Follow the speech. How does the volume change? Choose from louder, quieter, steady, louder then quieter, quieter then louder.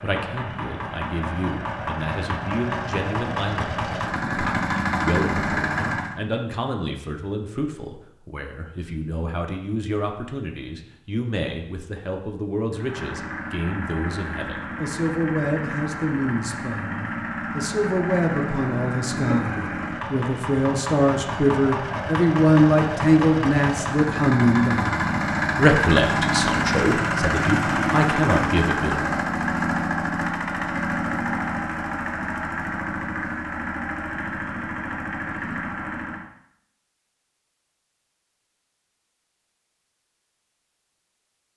louder.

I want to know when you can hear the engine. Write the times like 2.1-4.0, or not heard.
0.0-6.2, 12.7-36.2.